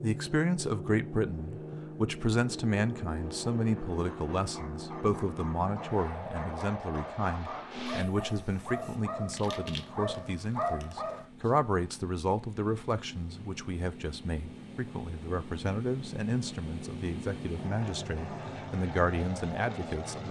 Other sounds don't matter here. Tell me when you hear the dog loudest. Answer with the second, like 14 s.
11 s.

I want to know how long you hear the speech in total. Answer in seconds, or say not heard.
20 s.